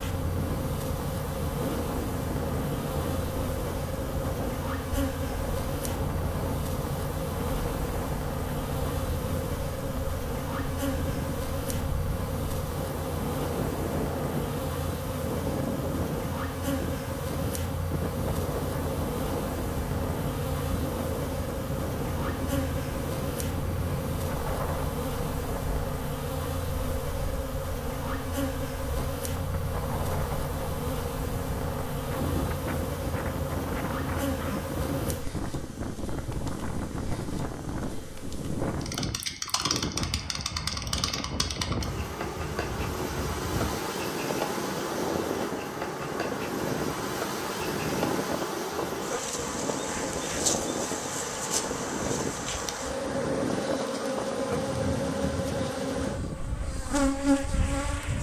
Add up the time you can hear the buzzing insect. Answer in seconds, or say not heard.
58 s.